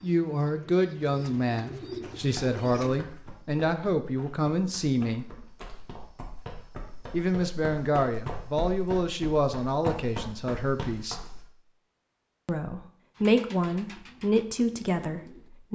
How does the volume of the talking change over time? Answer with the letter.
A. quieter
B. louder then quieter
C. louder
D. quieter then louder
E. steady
E.